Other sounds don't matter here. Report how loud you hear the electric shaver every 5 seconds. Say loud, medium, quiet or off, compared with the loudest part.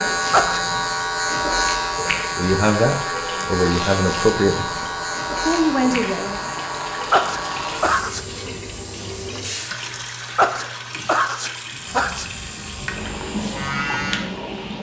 loud, medium, medium.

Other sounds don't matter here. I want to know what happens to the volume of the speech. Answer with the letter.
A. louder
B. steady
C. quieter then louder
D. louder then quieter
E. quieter
C.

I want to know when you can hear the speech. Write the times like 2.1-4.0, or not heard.
2.4-6.5.